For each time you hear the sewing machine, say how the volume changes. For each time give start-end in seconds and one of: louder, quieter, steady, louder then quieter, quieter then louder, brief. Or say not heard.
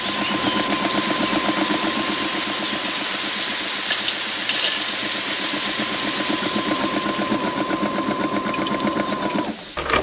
0.0-9.9 quieter then louder.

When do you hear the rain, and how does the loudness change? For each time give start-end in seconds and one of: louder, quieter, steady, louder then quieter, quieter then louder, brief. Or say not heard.
0.0-9.9 quieter.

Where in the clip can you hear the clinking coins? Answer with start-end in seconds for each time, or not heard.
3.9-5.0.